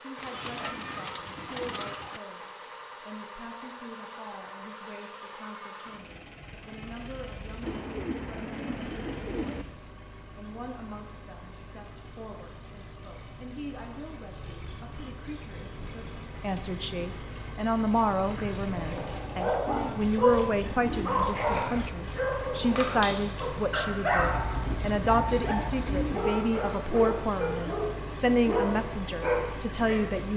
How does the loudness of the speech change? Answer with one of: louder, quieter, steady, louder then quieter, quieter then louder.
louder.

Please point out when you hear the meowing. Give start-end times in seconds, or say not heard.
not heard.